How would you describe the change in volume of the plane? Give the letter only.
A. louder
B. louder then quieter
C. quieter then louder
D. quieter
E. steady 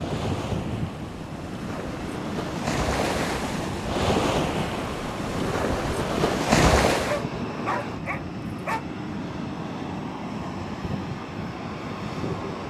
E.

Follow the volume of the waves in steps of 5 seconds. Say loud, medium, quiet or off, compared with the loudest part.
medium, loud, off.